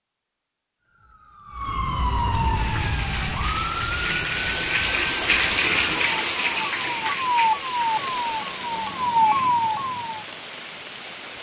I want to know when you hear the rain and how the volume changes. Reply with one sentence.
The rain can be heard from 2.2 to 11.3 s, getting louder then quieter.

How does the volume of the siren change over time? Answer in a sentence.
The volume of the siren goes down, then up.